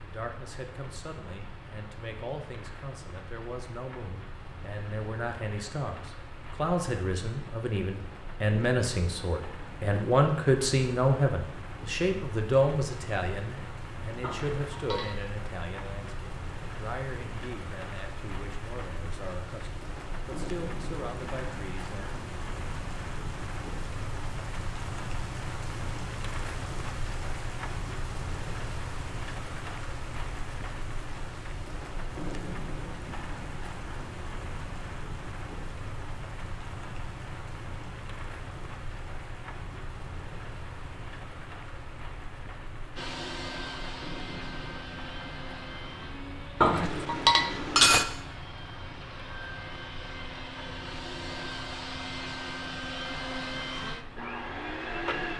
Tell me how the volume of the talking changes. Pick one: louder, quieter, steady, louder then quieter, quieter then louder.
louder then quieter.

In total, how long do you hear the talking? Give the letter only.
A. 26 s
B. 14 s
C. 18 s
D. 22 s
D.